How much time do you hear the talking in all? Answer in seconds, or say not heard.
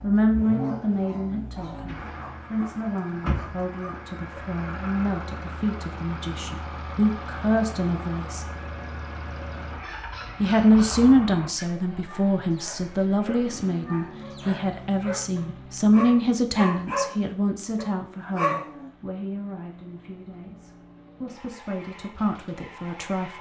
21 s.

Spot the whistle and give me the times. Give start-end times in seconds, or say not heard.
not heard.